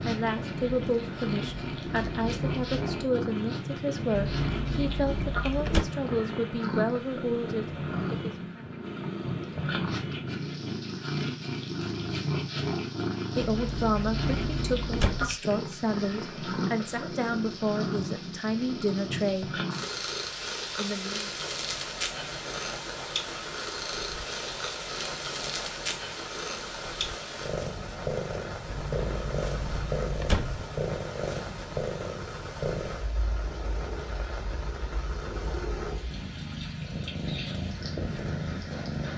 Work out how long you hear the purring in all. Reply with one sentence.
The purring can be heard for 39 seconds in total.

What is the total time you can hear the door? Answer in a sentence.
The door can be heard for 6 seconds in total.